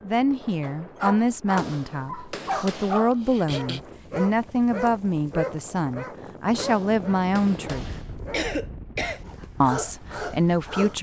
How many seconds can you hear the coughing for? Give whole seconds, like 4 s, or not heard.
2 s.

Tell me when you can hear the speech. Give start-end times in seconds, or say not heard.
0.0-8.0, 9.6-10.9.